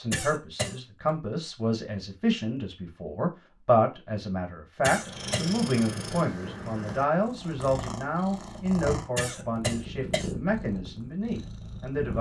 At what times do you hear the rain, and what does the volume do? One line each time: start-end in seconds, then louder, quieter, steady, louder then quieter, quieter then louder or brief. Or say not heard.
not heard.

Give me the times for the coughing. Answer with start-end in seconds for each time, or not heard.
0.1-0.8, 4.8-5.5, 9.2-10.3.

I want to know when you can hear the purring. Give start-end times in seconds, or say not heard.
4.8-12.1.